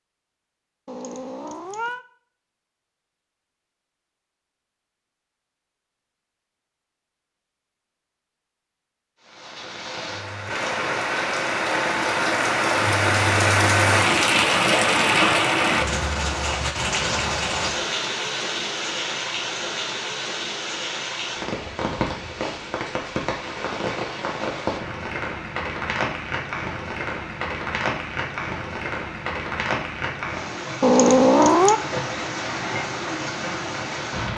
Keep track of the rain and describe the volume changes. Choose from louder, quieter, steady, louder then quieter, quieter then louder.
quieter.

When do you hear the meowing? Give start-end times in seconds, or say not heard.
0.8-2.0, 30.8-31.8.